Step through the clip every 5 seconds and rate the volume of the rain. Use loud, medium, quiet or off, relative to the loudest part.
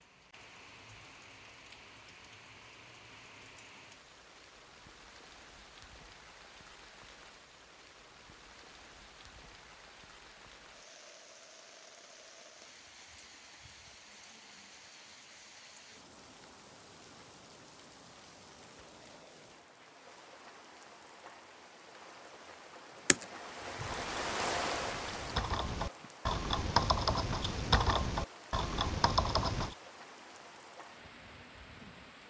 quiet, quiet, quiet, quiet, loud, medium, medium.